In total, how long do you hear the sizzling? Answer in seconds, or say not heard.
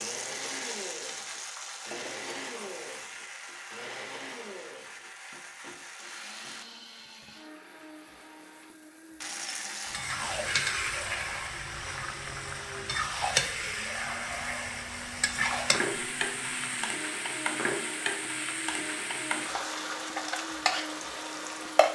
22 s.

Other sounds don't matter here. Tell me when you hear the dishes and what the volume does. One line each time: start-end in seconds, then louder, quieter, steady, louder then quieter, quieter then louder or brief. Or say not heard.
not heard.